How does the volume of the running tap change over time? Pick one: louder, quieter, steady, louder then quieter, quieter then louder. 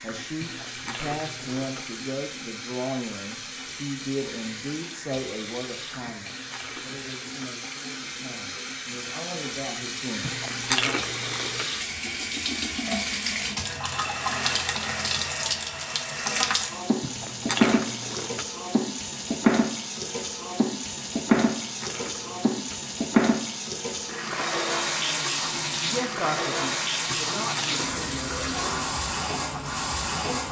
louder.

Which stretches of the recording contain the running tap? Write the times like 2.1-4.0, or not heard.
0.0-30.4.